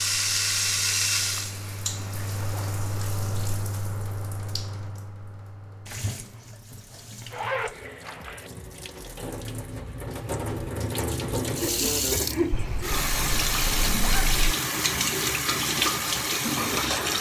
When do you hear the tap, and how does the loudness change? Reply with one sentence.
The tap can be heard from 0.0 to 17.1 s, getting quieter then louder.